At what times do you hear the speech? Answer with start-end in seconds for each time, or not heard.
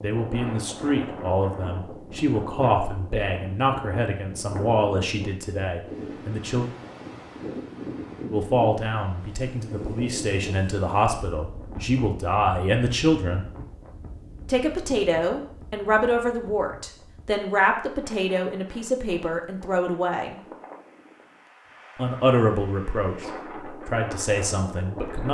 0.0-6.7, 8.3-13.4, 14.4-20.4, 21.9-25.2.